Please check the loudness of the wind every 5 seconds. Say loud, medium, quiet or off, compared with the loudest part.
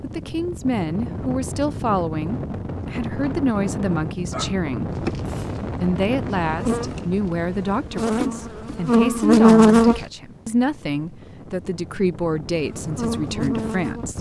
loud, loud, medium.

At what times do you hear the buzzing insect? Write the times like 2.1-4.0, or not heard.
4.9-10.0, 12.7-14.1.